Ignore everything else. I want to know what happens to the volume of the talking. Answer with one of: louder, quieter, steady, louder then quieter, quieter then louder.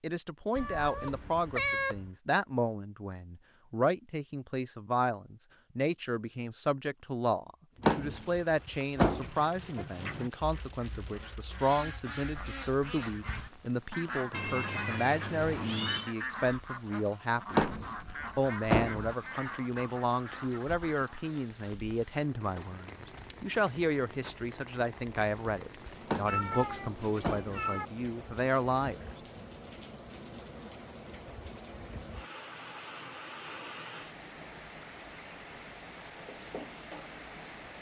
steady.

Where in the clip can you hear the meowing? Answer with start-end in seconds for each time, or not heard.
0.6-2.1, 14.3-16.1, 26.2-27.9.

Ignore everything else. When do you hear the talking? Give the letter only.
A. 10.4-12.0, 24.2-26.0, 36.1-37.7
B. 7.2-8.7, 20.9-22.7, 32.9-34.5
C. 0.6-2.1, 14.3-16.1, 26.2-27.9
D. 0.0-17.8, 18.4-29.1
D.